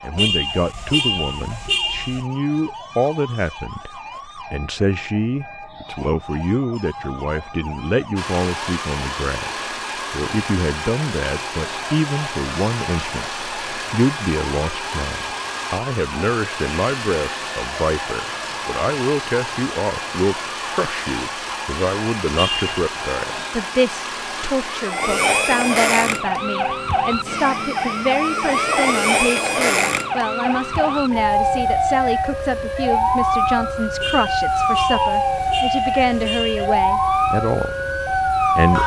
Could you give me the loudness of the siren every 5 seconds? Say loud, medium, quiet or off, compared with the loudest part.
quiet, quiet, quiet, quiet, quiet, loud, loud, loud.